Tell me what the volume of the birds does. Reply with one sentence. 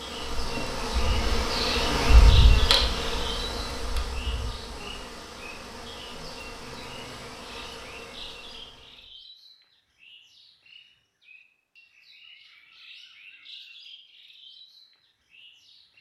The loudness of the birds goes down.